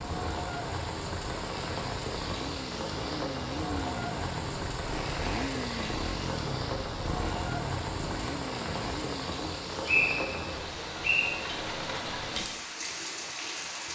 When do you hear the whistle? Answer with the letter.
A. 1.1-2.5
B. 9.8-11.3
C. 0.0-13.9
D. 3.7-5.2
B.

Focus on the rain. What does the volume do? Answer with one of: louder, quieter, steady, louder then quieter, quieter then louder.
steady.